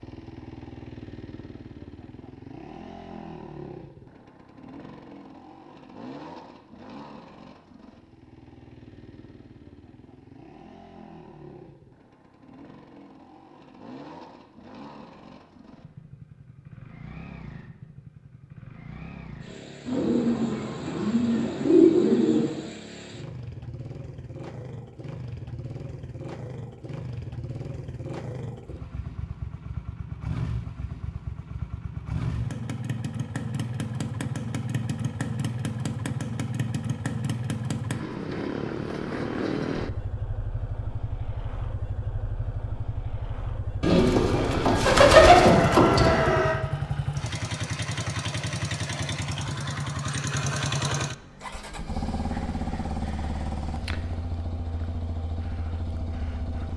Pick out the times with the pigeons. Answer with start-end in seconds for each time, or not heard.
19.9-22.6, 43.8-46.5.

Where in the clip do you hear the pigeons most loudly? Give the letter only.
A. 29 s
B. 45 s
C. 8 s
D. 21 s
B.